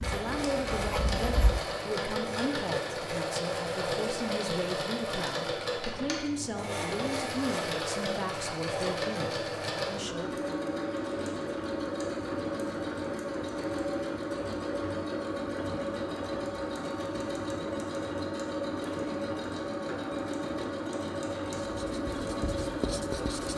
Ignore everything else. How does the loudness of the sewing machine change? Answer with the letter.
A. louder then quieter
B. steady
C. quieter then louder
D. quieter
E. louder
B.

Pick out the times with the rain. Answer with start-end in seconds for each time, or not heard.
not heard.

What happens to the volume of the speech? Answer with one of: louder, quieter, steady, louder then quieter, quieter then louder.
steady.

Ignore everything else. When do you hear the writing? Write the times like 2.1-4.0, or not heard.
0.0-1.6, 21.6-23.5.